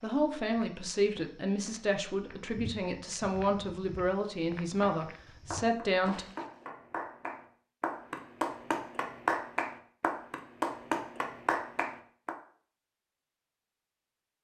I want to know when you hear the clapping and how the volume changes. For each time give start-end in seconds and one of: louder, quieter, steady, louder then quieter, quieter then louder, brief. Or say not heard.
4.8-12.3 louder.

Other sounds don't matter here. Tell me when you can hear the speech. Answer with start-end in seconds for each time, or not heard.
0.0-6.2.